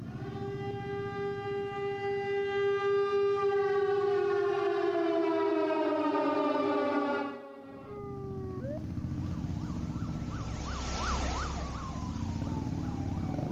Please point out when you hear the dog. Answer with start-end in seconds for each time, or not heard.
not heard.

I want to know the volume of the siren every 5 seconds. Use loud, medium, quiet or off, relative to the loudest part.
loud, loud, medium.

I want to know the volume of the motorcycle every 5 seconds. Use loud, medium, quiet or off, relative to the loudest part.
medium, loud, loud.